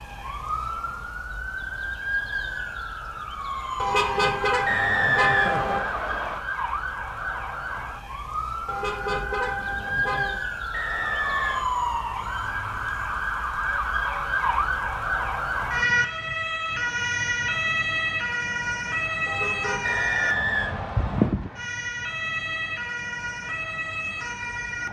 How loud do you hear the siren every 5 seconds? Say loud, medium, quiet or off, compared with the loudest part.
medium, medium, loud, loud, loud.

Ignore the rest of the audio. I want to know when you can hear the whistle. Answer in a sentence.
The whistle can be heard from 4.7 to 6.4 s, from 10.7 to 11.7 s and from 19.8 to 21.4 s.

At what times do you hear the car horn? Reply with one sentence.
You can hear the car horn from 3.8 to 5.8 s, from 8.7 to 10.4 s and from 19.2 to 20.1 s.